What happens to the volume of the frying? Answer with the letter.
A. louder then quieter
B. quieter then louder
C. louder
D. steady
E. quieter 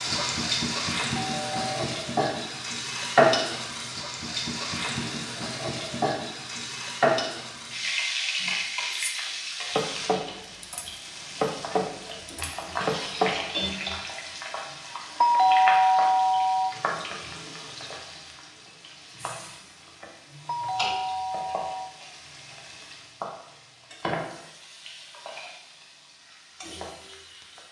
E.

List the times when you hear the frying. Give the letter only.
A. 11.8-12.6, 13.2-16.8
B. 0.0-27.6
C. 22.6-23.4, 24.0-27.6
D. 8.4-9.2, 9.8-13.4
B.